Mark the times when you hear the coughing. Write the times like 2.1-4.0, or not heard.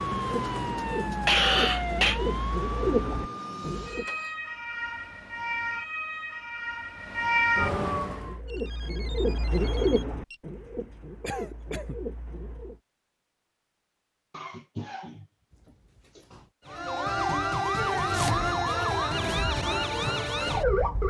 1.2-2.2, 11.2-12.0, 14.3-16.2.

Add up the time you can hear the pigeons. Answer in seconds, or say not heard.
9 s.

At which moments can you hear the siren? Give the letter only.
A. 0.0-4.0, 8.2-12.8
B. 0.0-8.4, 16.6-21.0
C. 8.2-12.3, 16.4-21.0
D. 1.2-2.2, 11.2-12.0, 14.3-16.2
B.